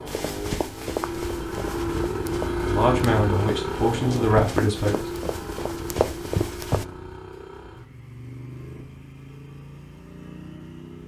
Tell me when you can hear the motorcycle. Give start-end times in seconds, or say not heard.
0.0-11.0.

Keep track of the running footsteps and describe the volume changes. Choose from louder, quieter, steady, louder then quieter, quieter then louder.
quieter then louder.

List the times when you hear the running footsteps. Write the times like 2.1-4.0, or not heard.
0.1-6.8.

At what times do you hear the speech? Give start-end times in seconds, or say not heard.
2.6-5.0.